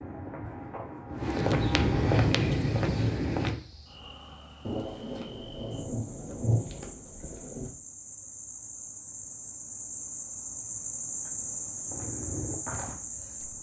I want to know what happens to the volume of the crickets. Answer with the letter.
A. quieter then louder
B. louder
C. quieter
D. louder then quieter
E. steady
B.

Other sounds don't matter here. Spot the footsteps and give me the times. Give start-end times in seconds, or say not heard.
0.0-3.5, 11.8-13.5.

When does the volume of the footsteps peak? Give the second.
2 s.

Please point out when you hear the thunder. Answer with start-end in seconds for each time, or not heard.
4.7-7.7.